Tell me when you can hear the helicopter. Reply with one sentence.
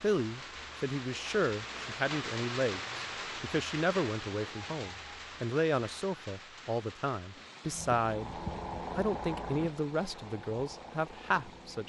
You can hear the helicopter from 7.7 to 11.8 s.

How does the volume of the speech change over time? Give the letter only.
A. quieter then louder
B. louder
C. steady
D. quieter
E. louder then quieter
C.